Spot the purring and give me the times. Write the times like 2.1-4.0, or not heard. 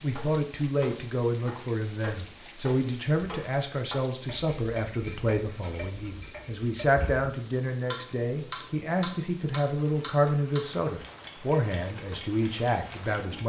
not heard.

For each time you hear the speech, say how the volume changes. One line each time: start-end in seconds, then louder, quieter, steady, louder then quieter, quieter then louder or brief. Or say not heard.
0.0-13.4 steady.